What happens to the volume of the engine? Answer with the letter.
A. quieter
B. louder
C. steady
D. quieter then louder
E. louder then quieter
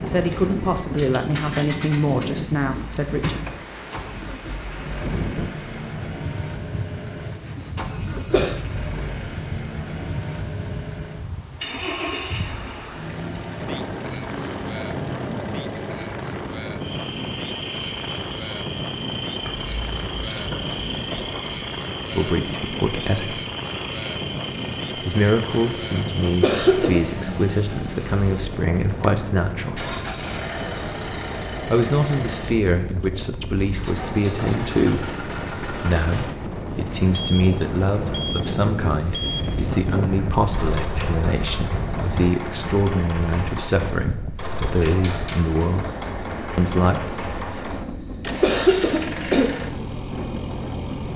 C.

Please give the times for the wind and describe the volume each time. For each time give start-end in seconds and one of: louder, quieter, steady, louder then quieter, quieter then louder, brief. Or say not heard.
0.0-51.1 steady.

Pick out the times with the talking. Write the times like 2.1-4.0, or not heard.
0.0-3.4, 22.1-23.4, 24.9-29.9, 31.6-45.9, 46.5-47.0.